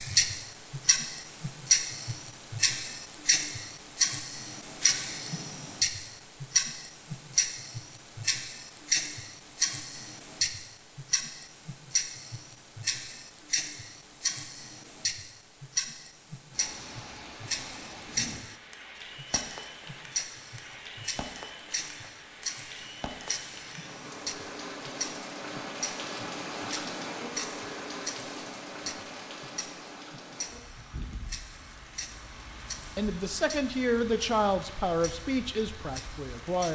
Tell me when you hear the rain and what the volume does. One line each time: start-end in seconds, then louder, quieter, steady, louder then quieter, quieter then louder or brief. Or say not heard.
16.5-36.7 louder then quieter.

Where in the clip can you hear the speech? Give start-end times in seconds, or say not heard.
33.0-36.7.